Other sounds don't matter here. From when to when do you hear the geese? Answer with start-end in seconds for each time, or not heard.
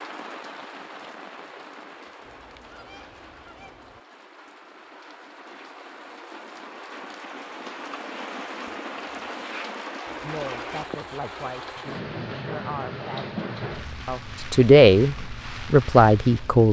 2.2-4.0, 10.1-11.8.